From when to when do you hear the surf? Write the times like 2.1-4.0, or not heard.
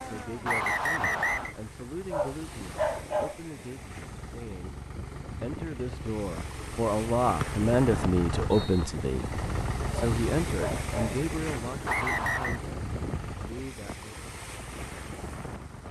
0.0-15.8.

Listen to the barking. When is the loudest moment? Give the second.
3 s.